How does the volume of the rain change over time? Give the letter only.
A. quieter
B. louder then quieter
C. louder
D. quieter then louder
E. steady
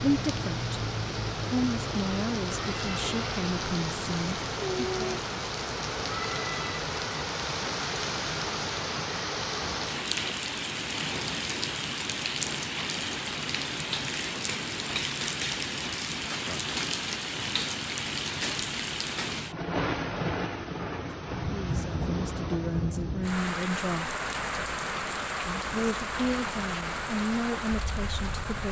E.